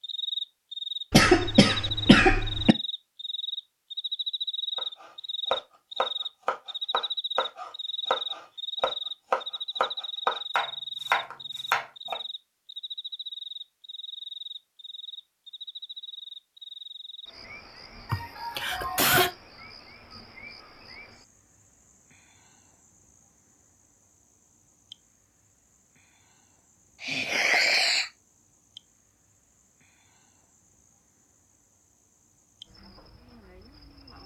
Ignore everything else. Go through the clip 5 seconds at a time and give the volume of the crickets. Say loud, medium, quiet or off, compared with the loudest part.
loud, loud, medium, quiet, quiet, quiet, quiet.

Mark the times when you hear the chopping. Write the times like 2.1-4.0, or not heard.
4.8-12.2.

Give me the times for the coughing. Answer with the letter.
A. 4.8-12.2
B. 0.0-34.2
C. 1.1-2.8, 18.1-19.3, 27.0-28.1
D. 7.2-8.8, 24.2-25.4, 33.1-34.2
C.